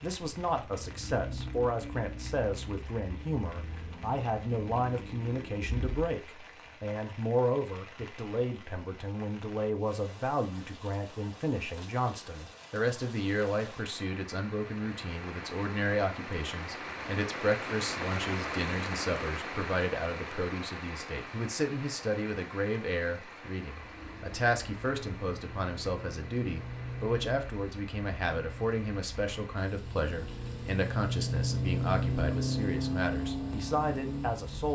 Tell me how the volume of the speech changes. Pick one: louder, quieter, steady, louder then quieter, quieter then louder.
steady.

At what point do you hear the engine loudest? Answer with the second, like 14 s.
32 s.